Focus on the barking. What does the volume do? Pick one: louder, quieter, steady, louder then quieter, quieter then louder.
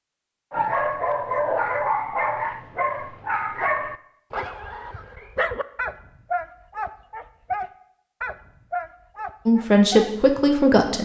quieter.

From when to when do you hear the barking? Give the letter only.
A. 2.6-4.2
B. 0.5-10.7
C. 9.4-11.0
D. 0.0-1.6
B.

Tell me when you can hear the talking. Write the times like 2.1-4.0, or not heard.
9.4-11.0.